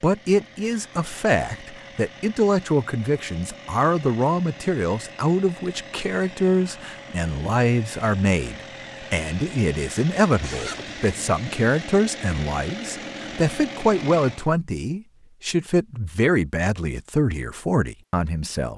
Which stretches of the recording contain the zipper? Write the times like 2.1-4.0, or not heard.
10.4-11.2.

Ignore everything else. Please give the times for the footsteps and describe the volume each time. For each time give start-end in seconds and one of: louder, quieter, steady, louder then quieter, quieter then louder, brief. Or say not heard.
not heard.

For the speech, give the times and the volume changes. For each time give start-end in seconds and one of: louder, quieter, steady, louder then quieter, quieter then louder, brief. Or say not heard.
0.0-18.7 steady.